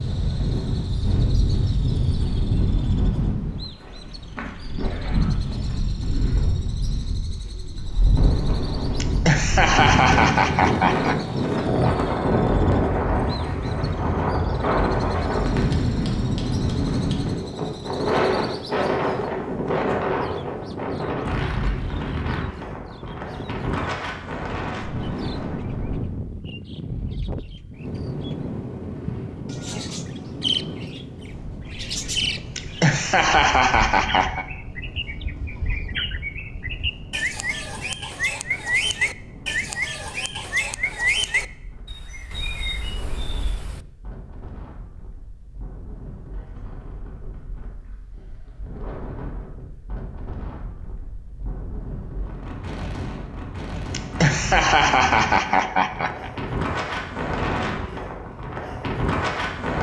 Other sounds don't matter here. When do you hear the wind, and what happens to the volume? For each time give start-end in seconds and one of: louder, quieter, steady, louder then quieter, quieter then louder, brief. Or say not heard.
0.0-59.7 quieter then louder.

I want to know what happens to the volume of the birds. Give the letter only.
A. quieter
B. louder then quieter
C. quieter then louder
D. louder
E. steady
D.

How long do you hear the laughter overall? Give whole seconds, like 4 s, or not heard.
7 s.